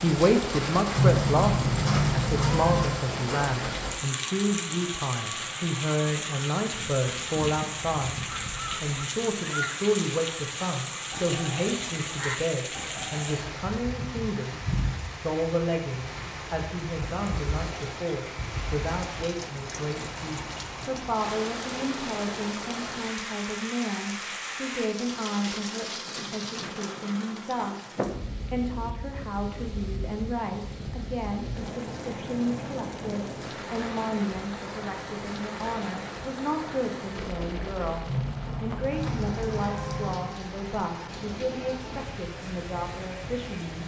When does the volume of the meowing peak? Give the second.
1 s.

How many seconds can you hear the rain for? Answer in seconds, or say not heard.
44 s.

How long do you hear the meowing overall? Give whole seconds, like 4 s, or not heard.
4 s.